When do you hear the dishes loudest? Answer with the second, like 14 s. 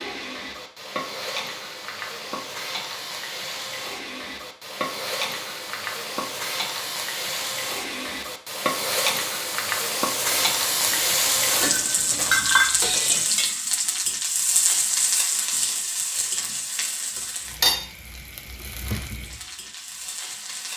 12 s.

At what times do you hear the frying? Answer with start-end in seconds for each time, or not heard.
0.0-20.7.